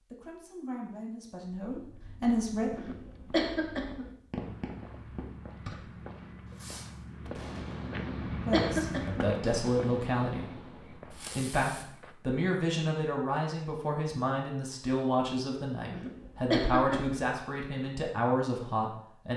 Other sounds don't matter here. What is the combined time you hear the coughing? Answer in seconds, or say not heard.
4 s.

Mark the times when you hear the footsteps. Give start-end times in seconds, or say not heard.
1.7-12.2.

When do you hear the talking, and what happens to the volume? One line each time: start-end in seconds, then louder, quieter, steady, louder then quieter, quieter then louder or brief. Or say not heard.
0.0-2.7 brief
8.4-19.3 steady.